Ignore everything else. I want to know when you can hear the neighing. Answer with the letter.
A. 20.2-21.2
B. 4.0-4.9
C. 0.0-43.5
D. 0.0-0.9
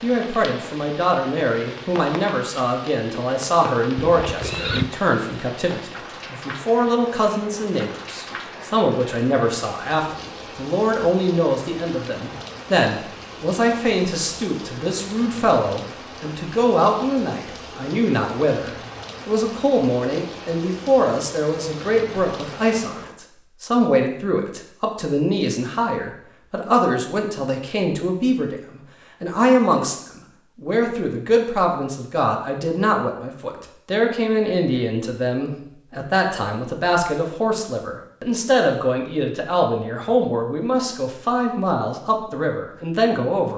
B.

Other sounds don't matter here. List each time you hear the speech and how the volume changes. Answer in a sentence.
The speech can be heard from 0.0 to 43.5 s, at a steady volume.